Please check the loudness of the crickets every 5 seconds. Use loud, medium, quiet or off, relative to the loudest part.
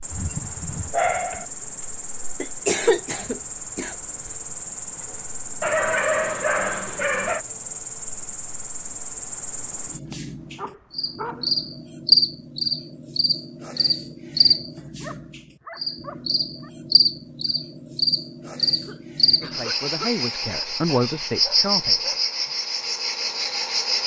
medium, medium, loud, loud, loud.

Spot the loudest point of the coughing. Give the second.
3 s.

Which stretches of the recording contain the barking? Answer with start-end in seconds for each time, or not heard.
0.1-1.4, 5.6-7.5, 10.1-11.5, 14.8-16.7, 20.4-22.4.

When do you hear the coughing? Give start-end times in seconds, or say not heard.
2.4-4.3, 18.8-20.1.